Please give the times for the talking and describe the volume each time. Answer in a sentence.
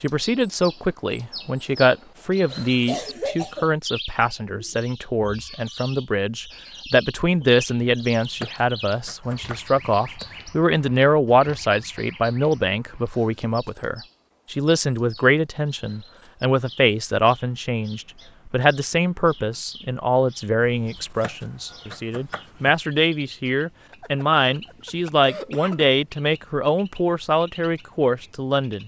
The talking can be heard from 0.0 to 28.8 s, at a steady volume.